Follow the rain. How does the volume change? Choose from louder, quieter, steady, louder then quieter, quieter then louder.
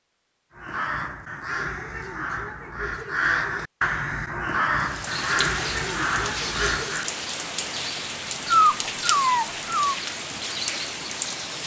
steady.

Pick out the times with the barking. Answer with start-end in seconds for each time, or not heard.
8.4-9.9.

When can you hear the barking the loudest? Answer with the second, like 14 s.
9 s.